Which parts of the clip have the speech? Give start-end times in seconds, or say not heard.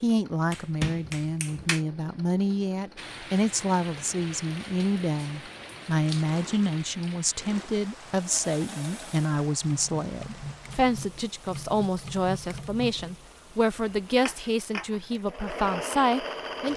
0.0-16.7.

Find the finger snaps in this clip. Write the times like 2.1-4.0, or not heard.
0.5-1.8.